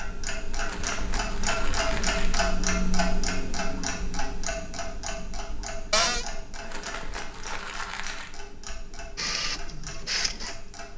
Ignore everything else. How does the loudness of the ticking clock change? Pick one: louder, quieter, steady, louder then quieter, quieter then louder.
quieter.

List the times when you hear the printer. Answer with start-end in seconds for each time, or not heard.
9.2-10.7.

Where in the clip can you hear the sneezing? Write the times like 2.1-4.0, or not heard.
not heard.